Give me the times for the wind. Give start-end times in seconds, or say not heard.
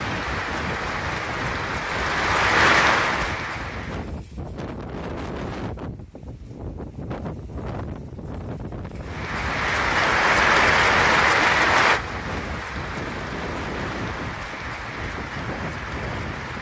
0.0-16.5.